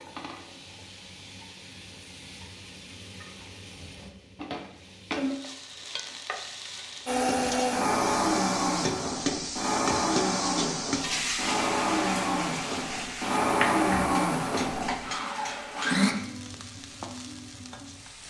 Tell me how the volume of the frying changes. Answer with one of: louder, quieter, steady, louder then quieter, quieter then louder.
louder then quieter.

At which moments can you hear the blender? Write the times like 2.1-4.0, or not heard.
7.0-16.1.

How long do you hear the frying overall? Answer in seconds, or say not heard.
18 s.